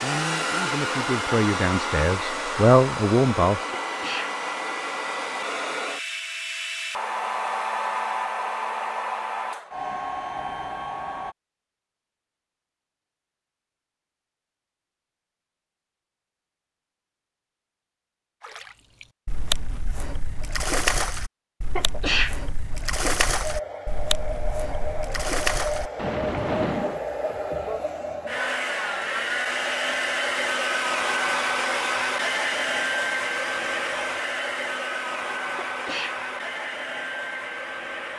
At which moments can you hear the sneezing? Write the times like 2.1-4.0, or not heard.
3.7-4.3, 21.8-22.4, 35.5-36.2.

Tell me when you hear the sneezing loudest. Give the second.
22 s.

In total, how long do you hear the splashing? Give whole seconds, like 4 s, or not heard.
9 s.